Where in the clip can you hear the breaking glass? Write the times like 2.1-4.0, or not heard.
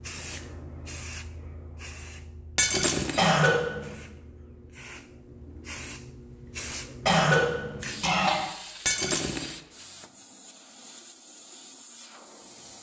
2.5-3.3, 8.8-9.6.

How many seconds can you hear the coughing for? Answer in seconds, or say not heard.
2 s.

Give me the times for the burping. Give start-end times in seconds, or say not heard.
not heard.